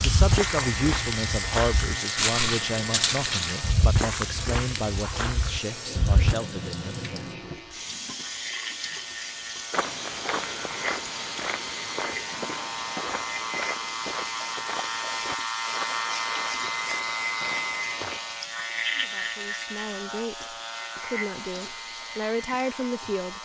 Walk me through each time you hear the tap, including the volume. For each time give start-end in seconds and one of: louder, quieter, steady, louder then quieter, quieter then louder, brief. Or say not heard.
0.0-23.4 quieter.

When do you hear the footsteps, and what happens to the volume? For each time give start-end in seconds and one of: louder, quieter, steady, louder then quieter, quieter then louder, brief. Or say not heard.
0.0-6.3 louder then quieter
9.7-18.2 quieter.